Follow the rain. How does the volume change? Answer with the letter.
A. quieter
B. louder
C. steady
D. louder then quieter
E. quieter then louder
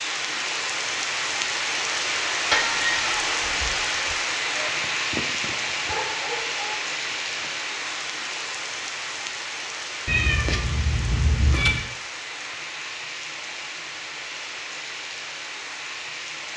A.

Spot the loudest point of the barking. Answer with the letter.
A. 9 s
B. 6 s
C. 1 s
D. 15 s
B.